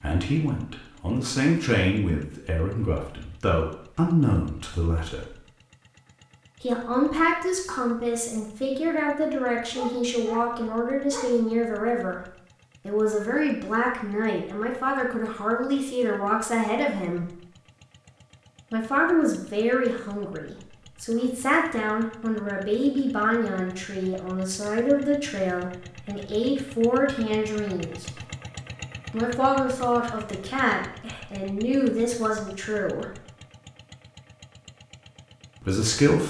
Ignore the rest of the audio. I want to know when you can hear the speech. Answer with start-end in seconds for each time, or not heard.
0.0-5.3, 6.6-17.4, 18.7-28.1, 29.1-33.2, 35.6-36.2.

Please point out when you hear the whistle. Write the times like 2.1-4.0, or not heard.
not heard.